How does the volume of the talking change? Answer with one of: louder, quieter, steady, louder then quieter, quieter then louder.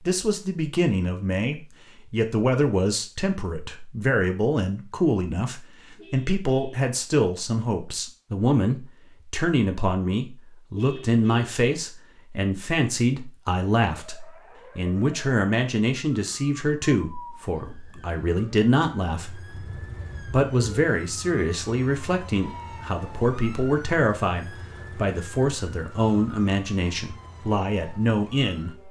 steady.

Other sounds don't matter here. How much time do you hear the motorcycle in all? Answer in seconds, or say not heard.
not heard.